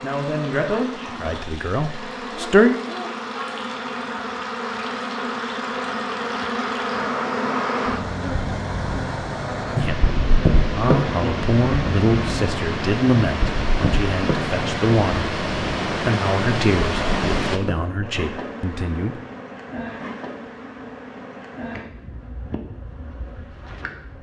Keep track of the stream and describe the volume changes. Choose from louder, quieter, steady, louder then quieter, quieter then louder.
louder.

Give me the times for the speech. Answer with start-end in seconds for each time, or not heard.
0.0-2.8, 9.8-19.1.